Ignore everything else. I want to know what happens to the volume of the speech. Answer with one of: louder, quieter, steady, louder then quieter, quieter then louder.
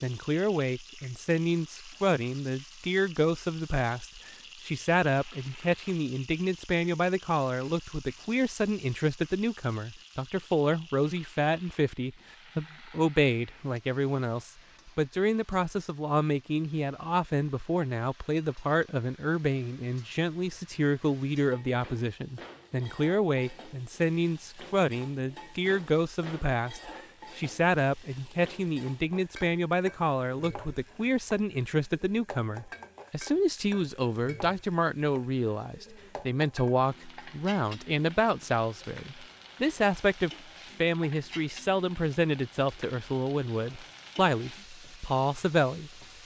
steady.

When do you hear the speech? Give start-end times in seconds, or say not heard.
0.0-46.0.